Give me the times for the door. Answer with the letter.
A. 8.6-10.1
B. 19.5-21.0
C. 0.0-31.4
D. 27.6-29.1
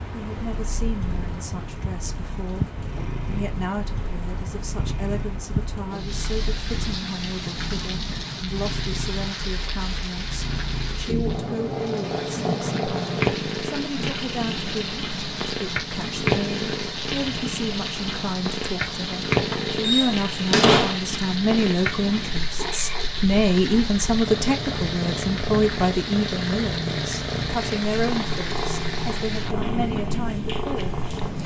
B.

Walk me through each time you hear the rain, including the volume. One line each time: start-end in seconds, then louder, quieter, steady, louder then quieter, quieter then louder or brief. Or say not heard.
0.0-31.4 steady.